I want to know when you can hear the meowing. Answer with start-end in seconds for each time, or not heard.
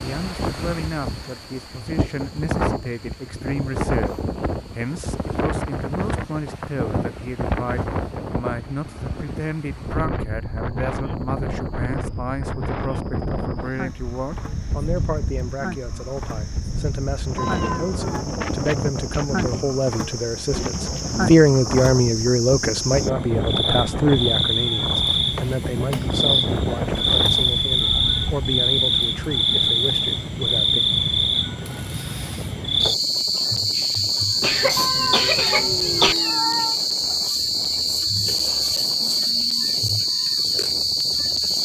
17.4-18.1, 34.8-36.8.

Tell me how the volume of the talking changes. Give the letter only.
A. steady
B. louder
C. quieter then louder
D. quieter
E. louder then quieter
E.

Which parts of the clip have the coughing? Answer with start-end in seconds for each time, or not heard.
34.4-36.1.